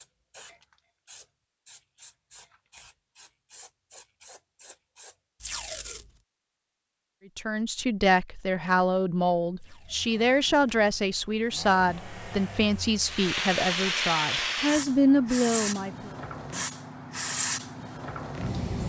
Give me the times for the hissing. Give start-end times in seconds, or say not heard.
0.0-5.2, 13.0-18.8.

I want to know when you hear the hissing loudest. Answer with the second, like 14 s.
14 s.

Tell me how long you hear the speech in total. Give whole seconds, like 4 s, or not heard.
9 s.